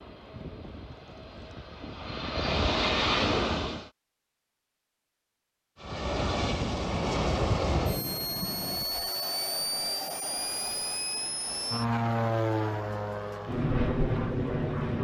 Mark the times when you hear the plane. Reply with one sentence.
You can hear the plane from 0.0 to 3.9 s and from 5.8 to 14.9 s.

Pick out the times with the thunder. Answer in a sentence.
You can hear the thunder from 6.2 to 9.1 s.